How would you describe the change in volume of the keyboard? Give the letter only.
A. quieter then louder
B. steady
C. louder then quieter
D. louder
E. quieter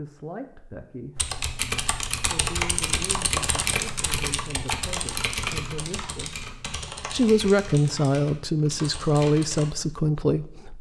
E.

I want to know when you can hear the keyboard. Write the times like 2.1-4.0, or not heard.
1.1-9.7.